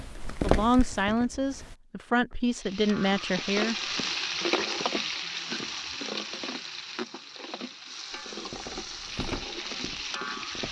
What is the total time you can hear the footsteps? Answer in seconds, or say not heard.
4 s.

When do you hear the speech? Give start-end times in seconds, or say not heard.
0.4-3.8.